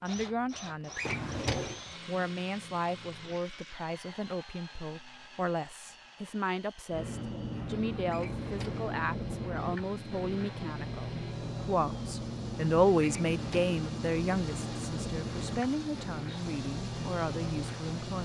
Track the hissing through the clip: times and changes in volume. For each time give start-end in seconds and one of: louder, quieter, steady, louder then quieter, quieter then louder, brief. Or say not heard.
6.9-18.2 steady.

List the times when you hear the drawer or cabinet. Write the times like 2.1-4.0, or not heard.
0.9-1.8, 8.1-8.9, 13.0-13.8.